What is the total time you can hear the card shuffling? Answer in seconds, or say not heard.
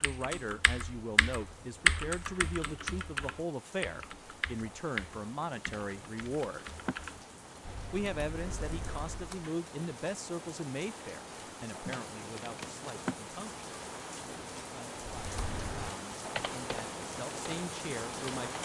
3 s.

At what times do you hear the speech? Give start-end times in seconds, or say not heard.
0.0-6.7, 7.9-13.7, 14.6-18.6.